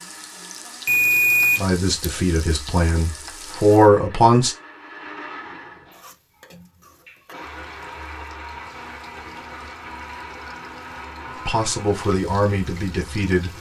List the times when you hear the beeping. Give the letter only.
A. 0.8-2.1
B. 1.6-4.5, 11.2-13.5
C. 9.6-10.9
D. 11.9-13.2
A.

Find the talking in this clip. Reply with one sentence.
The talking can be heard from 1.6 to 4.5 s and from 11.2 to 13.5 s.